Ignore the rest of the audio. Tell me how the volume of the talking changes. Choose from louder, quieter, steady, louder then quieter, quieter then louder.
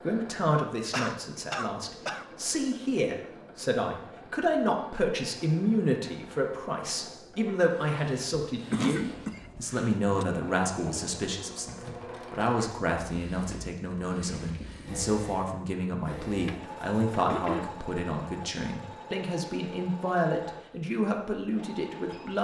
steady.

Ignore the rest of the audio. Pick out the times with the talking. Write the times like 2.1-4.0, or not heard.
0.0-22.4.